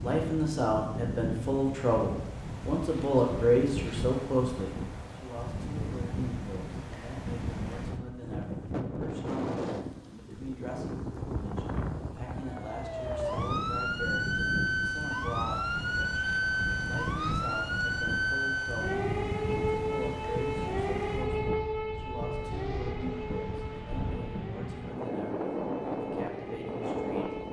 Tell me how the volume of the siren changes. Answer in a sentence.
The loudness of the siren goes down.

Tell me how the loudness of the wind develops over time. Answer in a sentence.
The loudness of the wind stays about the same.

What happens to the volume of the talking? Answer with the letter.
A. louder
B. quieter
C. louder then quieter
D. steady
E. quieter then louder
B.